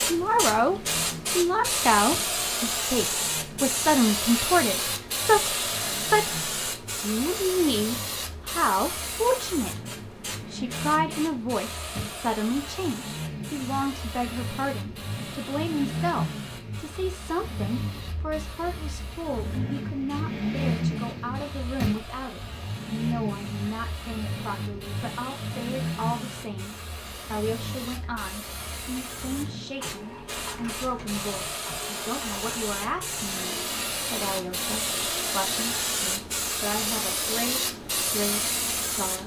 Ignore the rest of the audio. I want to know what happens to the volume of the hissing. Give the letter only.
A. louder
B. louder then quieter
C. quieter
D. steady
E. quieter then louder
E.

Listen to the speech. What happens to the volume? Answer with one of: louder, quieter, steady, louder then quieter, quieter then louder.
quieter.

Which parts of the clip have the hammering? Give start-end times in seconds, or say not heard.
not heard.